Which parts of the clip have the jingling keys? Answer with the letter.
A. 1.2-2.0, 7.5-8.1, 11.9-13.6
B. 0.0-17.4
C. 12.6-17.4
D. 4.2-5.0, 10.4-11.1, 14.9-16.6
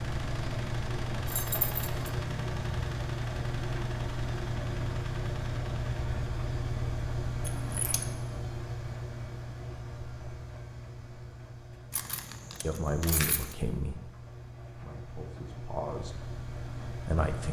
A.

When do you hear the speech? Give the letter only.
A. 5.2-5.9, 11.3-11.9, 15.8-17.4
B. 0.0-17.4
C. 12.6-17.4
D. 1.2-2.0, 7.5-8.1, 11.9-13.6
C.